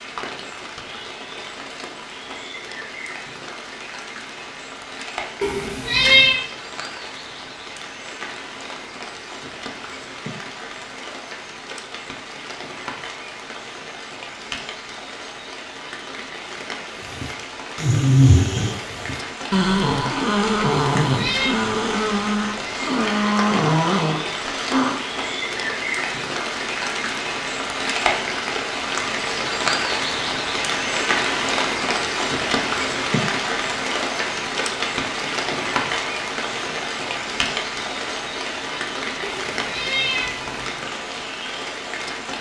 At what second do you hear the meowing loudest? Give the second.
6 s.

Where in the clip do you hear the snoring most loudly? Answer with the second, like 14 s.
18 s.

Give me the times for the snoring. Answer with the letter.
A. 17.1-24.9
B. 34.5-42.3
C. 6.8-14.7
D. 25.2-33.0
A.